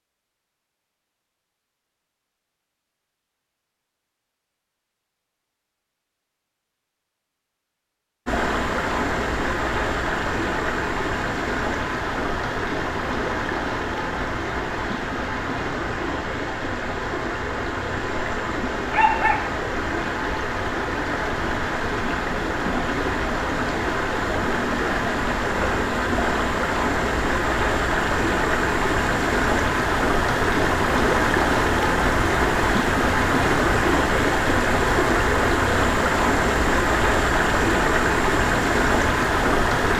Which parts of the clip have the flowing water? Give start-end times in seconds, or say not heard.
8.2-39.9.